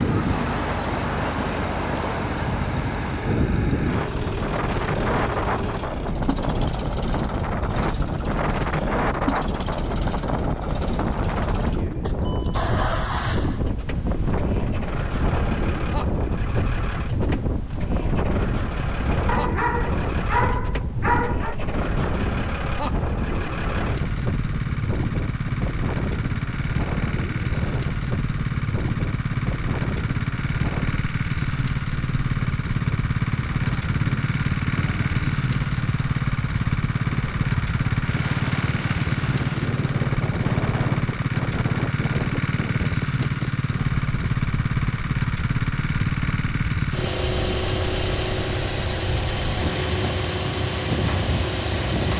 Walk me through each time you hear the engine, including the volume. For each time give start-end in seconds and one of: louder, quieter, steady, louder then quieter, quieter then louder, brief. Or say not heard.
0.0-52.1 louder.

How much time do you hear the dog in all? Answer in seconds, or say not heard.
2 s.